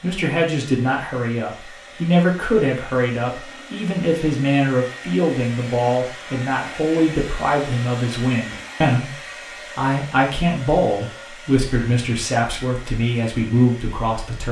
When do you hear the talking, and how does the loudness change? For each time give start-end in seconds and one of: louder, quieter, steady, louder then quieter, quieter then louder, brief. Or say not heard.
0.0-14.4 steady.